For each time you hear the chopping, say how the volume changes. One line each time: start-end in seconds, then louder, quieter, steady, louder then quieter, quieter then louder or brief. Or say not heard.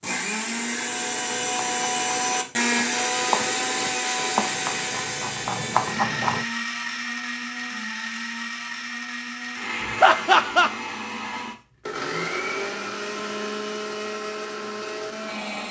0.5-6.5 louder.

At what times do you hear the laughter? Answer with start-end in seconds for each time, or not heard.
10.0-10.7.